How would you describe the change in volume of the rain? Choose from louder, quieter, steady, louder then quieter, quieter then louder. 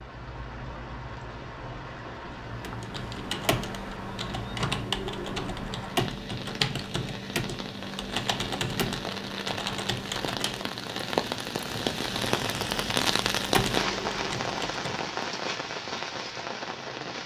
louder.